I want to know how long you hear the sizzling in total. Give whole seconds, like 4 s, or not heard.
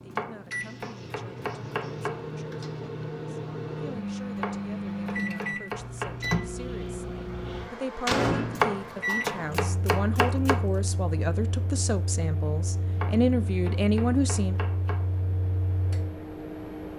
not heard.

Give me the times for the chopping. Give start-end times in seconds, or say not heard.
0.1-2.2, 4.3-6.5, 8.6-10.7, 12.9-15.1.